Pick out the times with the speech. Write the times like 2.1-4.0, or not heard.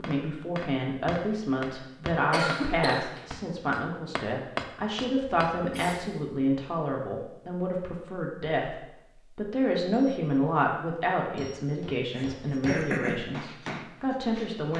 0.0-14.7.